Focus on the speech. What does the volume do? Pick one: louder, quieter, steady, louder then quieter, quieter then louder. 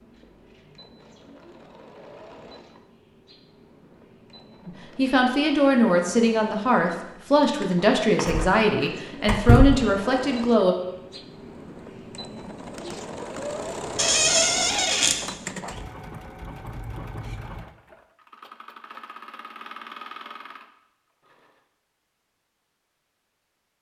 steady.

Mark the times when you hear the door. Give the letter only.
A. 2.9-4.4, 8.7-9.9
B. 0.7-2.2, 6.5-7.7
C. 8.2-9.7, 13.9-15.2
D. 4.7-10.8
C.